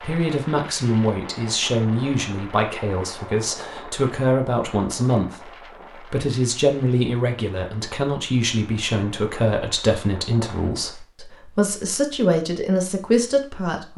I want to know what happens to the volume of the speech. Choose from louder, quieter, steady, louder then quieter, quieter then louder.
steady.